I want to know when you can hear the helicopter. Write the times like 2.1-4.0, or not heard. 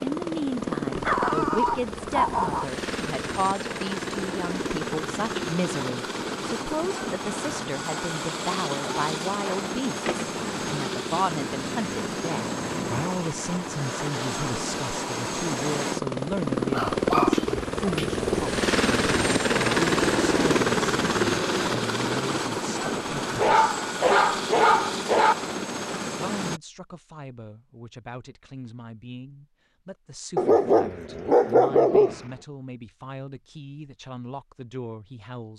0.0-26.6.